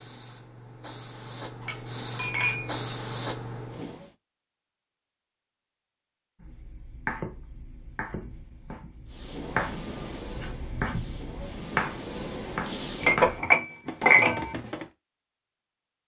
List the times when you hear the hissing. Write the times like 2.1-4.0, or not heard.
0.0-4.1, 9.1-13.4.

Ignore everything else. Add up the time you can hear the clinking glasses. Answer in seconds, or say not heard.
3 s.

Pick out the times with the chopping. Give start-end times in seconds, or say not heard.
6.4-14.9.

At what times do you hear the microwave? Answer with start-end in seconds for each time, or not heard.
not heard.